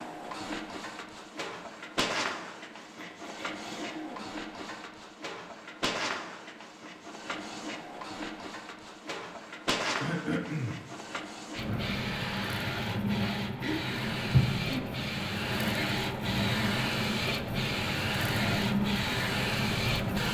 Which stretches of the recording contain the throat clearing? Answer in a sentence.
You can hear the throat clearing from 2.8 to 4.3 s, from 10.0 to 10.8 s and from 13.6 to 14.9 s.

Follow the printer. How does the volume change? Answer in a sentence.
The loudness of the printer goes up.